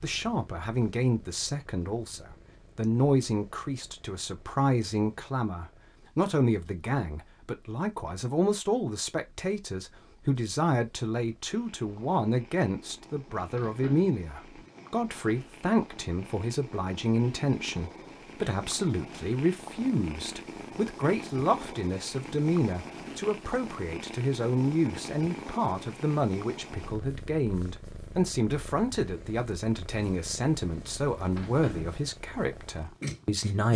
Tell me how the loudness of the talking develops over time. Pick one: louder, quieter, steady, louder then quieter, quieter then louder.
steady.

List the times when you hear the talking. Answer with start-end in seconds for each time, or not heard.
0.0-33.7.